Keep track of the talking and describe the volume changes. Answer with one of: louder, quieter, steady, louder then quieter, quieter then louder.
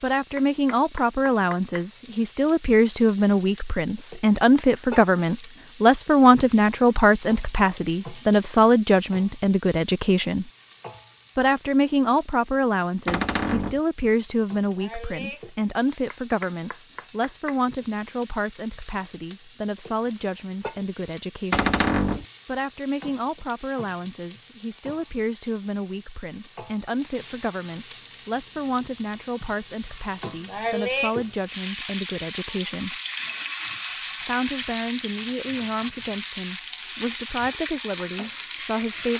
quieter.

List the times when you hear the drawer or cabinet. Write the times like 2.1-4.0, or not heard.
13.1-13.8, 21.5-22.2.